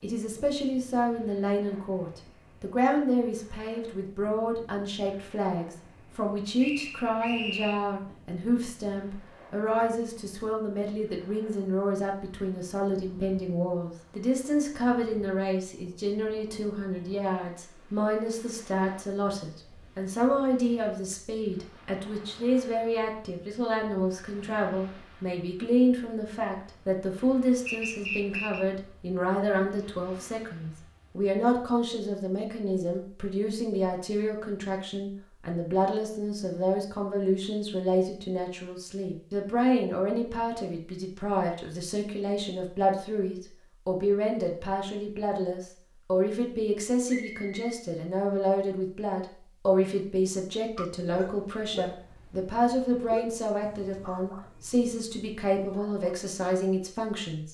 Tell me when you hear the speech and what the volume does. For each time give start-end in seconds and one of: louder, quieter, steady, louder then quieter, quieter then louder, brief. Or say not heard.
0.0-57.5 steady.